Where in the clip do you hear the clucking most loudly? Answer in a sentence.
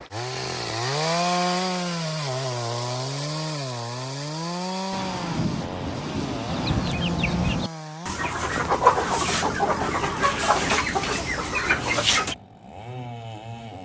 The loudest moment of the clucking is at 9 seconds.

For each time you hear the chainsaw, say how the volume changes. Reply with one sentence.
The chainsaw can be heard from 0.0 to 13.8 s, getting quieter.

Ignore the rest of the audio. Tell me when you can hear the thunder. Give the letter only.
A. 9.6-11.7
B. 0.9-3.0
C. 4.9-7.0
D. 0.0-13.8
C.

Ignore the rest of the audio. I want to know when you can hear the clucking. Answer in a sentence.
You can hear the clucking from 6.5 to 12.3 s.